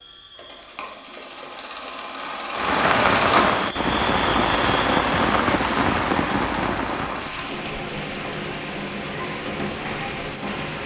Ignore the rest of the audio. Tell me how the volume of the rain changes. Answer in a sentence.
The volume of the rain goes down.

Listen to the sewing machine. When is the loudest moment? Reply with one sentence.
The volume of the sewing machine peaks at 3 seconds.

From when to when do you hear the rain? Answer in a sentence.
You can hear the rain from 2.5 to 10.8 s.